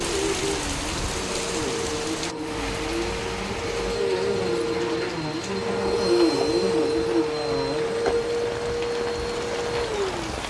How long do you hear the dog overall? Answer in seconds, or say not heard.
not heard.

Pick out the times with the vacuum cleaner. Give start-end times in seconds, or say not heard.
0.0-10.2.